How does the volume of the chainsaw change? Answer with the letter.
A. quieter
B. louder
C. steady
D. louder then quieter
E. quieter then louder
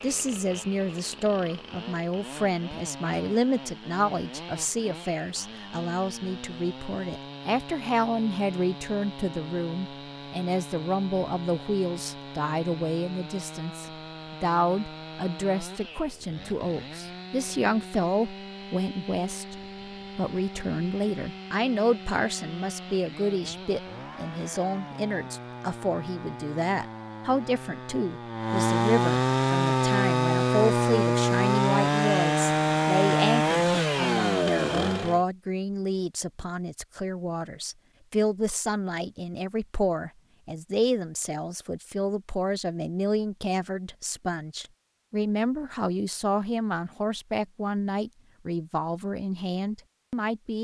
B.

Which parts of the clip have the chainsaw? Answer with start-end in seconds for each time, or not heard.
0.0-35.2.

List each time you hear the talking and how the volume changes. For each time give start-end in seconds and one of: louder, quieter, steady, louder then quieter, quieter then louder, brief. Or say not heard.
0.0-50.6 steady.